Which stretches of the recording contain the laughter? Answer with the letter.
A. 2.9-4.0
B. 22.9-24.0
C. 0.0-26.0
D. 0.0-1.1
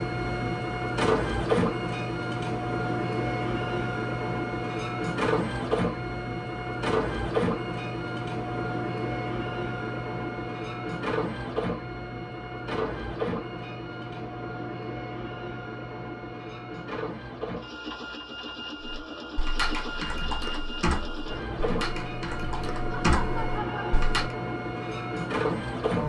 B.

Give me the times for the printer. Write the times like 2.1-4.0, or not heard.
0.0-26.0.